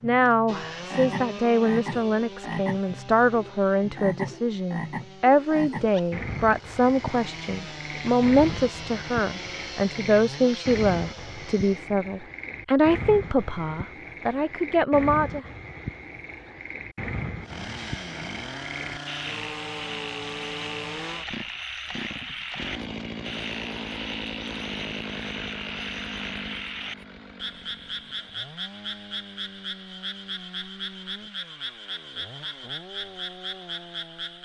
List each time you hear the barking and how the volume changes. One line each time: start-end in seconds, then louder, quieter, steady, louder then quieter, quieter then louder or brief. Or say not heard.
not heard.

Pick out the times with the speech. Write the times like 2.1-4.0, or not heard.
0.0-15.4.